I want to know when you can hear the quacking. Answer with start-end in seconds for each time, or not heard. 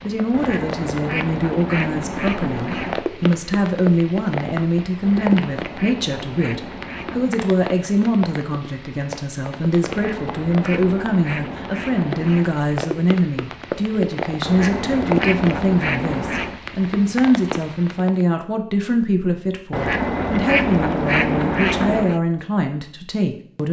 0.3-3.0, 5.0-7.4, 9.8-12.6, 14.4-16.6, 19.7-22.2.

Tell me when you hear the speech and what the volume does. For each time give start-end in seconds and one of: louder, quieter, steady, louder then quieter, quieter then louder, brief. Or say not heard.
0.1-23.6 steady.